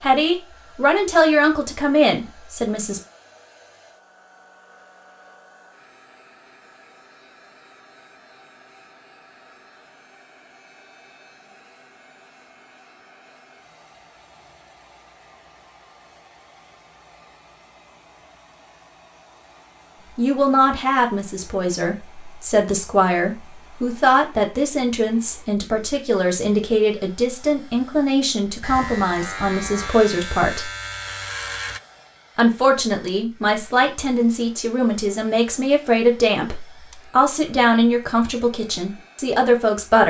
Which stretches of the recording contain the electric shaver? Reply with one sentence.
You can hear the electric shaver from 28.6 to 31.8 s.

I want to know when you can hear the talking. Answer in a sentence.
The talking can be heard from 0.0 to 3.0 s, from 20.1 to 30.7 s and from 32.4 to 40.0 s.